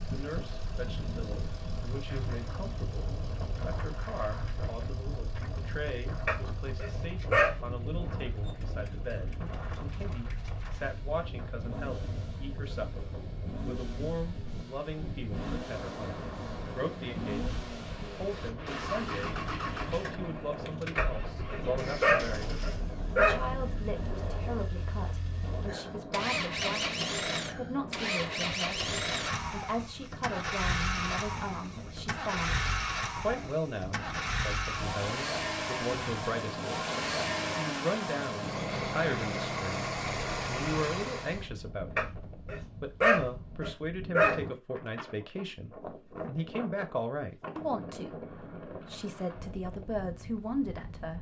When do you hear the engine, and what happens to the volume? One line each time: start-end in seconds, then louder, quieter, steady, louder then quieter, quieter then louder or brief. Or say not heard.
0.0-41.5 louder.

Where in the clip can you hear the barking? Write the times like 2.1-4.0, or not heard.
6.2-7.5, 20.9-23.4, 42.0-44.4.